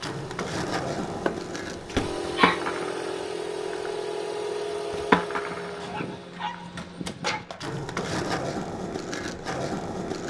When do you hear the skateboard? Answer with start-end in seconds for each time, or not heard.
0.0-10.2.